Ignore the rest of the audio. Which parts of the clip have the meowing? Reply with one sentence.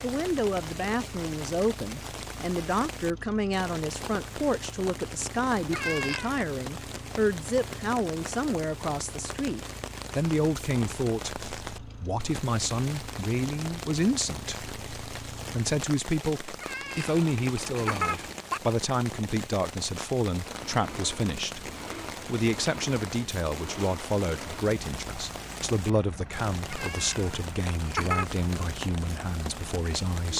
The meowing can be heard from 5.7 to 6.3 s, from 16.6 to 18.6 s and from 26.7 to 28.6 s.